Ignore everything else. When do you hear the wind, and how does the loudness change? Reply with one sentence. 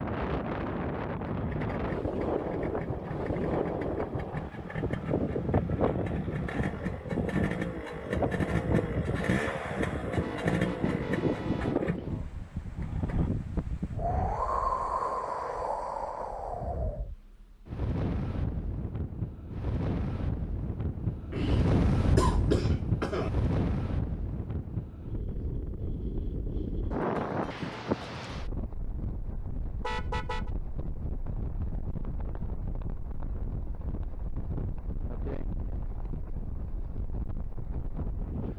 You can hear the wind from 0.0 to 38.5 s, getting quieter.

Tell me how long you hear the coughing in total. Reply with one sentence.
You can hear the coughing for 2 seconds altogether.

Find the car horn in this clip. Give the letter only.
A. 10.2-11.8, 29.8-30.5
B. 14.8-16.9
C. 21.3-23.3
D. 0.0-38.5
A.